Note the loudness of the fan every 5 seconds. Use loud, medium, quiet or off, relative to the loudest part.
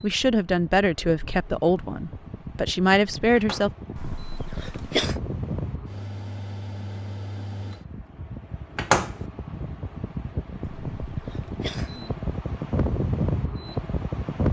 medium, medium, loud.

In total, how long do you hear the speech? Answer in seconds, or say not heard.
4 s.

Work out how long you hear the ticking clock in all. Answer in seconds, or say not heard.
not heard.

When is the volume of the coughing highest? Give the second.
5 s.